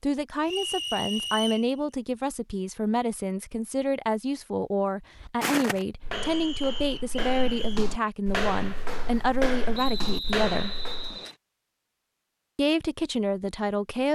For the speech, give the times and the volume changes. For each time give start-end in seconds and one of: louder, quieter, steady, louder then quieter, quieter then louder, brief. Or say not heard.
0.0-10.8 steady
12.6-14.0 brief.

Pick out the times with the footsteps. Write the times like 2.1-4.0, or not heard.
5.2-11.2.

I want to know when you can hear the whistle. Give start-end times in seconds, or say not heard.
0.5-1.7, 6.1-7.8, 9.7-11.3.